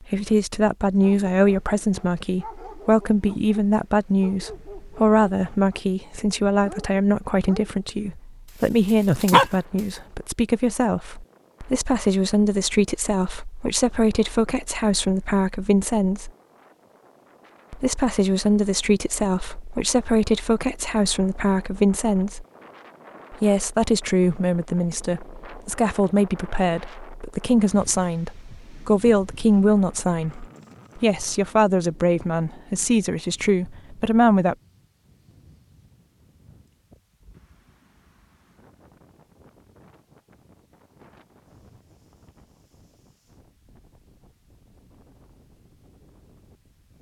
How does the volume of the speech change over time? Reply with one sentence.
The loudness of the speech stays about the same.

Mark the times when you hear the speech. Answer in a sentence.
You can hear the speech from 0.0 to 16.3 s, from 17.7 to 22.4 s and from 23.3 to 34.5 s.